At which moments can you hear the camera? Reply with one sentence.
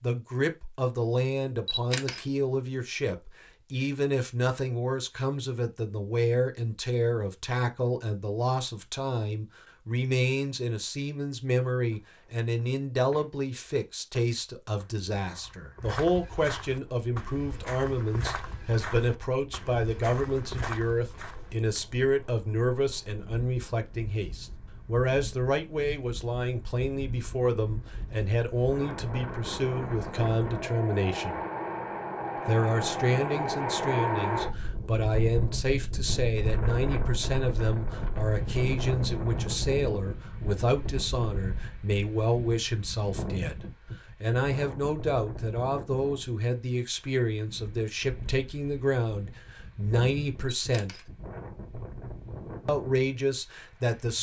The camera can be heard from 1.6 to 2.2 s and from 50.5 to 51.0 s.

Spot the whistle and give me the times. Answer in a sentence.
You can't hear the whistle here.